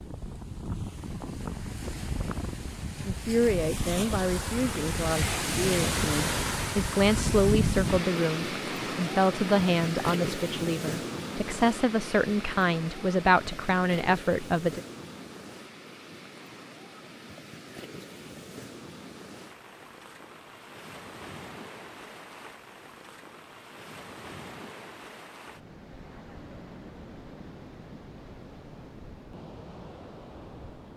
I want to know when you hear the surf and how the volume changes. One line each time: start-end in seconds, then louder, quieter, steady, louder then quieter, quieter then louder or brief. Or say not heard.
0.0-30.9 quieter.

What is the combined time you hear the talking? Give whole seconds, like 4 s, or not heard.
12 s.